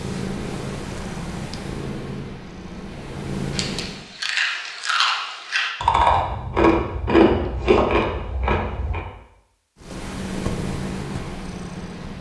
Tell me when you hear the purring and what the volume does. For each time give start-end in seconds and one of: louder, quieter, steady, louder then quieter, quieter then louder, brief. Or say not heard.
0.0-4.0 quieter then louder
9.8-12.1 brief.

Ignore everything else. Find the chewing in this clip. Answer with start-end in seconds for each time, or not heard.
3.5-9.0.